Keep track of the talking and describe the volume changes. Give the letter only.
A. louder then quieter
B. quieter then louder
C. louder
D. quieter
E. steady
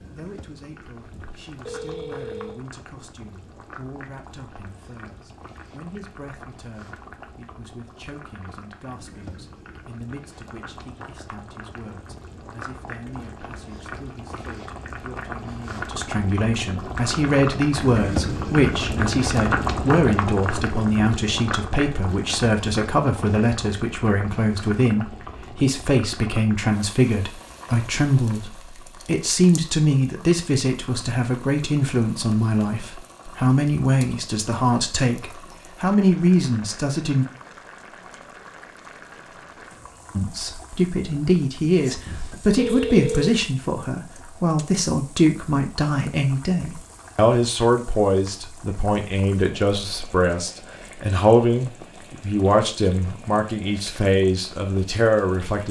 C.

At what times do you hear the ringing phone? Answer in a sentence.
You can hear the ringing phone from 1.0 to 2.6 s and from 42.0 to 43.4 s.